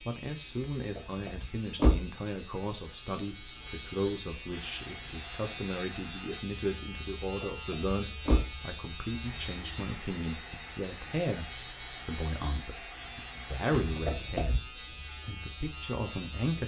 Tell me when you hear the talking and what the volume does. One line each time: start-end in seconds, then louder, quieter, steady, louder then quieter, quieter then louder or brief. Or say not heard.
0.0-16.6 steady.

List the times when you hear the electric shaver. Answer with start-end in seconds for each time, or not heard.
0.0-16.6.